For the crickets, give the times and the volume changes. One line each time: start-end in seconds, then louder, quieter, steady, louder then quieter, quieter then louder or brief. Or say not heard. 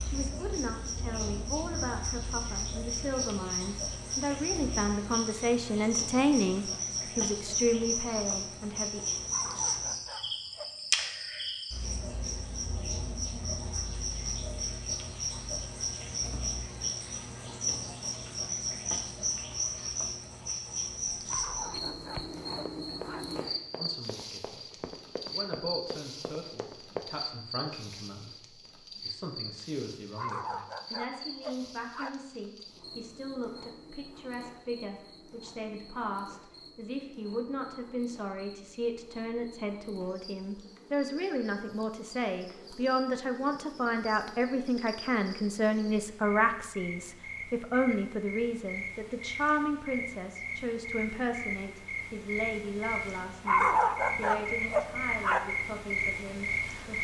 0.0-56.9 quieter then louder.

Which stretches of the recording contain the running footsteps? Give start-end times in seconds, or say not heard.
21.1-27.1.